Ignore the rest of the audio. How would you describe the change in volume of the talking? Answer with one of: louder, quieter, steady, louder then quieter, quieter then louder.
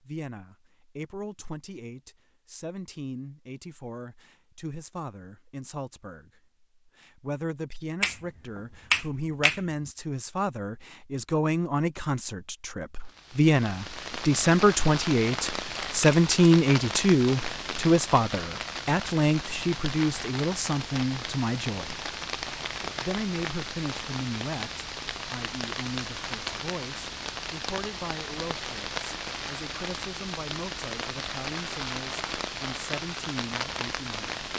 louder then quieter.